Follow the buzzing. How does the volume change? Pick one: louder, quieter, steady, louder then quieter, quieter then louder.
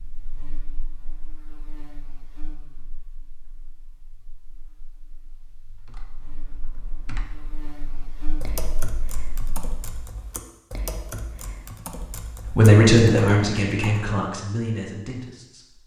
quieter then louder.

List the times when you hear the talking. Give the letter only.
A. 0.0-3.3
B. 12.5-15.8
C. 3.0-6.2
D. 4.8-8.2
B.